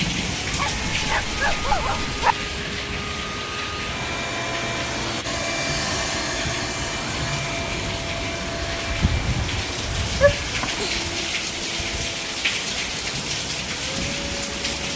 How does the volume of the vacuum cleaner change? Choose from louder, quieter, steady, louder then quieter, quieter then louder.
louder then quieter.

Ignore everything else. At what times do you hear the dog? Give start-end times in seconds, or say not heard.
0.6-2.4, 10.2-10.9.